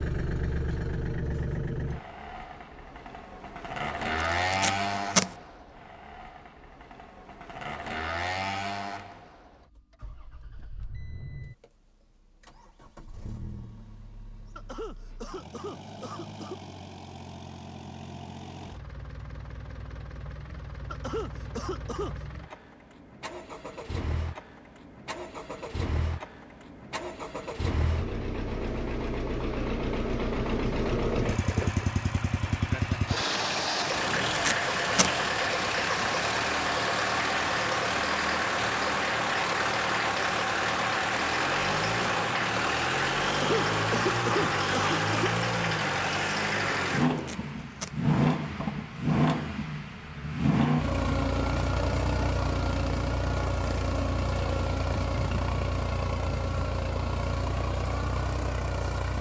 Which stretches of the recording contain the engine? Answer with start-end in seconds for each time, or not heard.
0.0-59.1.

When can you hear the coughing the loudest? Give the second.
44 s.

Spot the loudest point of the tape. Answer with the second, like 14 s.
5 s.